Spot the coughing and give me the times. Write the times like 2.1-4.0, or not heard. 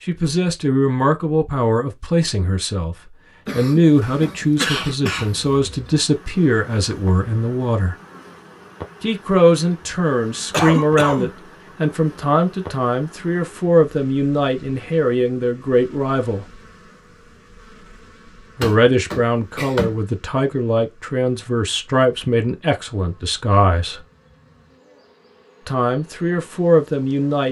3.5-5.7, 10.5-11.3, 18.6-19.9.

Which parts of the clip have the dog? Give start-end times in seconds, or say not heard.
not heard.